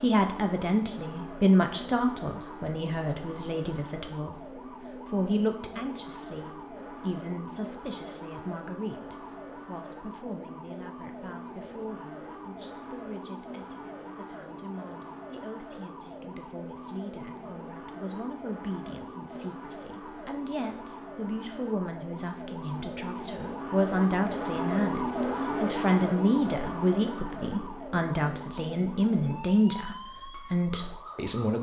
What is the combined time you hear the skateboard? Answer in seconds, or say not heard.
not heard.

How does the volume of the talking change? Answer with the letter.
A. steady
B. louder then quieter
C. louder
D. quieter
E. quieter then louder
E.